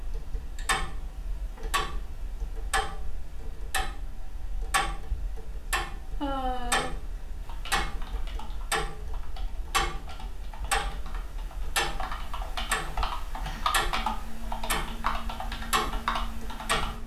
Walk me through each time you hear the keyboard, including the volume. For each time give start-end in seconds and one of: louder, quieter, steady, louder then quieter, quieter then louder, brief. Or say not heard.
7.4-16.9 louder.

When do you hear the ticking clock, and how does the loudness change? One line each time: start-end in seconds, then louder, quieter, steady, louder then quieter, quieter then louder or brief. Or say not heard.
0.0-17.0 steady.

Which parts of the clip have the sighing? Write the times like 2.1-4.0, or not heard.
6.2-6.9, 13.4-13.8.